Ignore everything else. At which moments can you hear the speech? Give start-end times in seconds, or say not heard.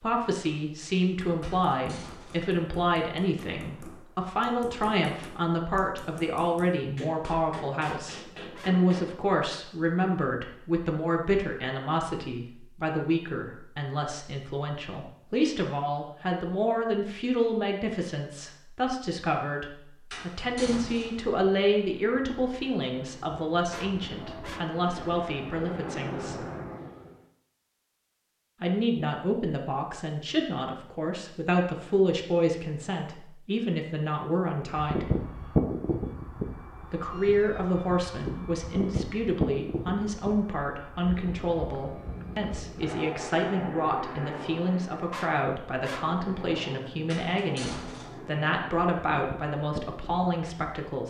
0.0-26.4, 28.6-35.0, 36.9-51.0.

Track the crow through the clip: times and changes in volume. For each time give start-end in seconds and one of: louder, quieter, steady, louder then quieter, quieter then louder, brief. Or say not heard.
not heard.